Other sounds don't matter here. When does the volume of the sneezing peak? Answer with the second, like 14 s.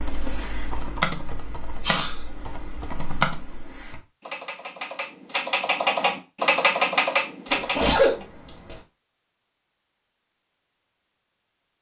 8 s.